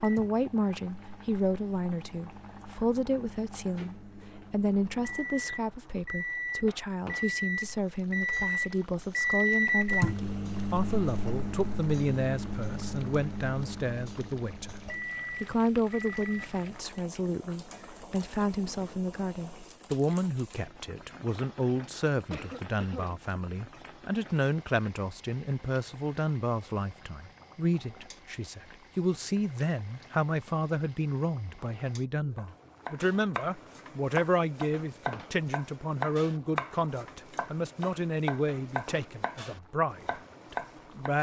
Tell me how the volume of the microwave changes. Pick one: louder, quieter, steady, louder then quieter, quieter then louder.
louder then quieter.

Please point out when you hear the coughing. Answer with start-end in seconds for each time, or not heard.
22.3-23.2.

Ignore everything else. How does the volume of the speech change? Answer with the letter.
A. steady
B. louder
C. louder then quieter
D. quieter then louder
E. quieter
A.